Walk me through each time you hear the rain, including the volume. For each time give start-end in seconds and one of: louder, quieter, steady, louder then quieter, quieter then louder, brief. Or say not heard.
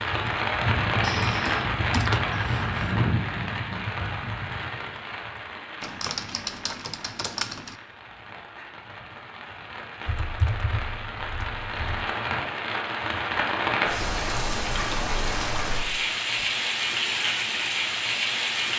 0.0-18.7 quieter then louder.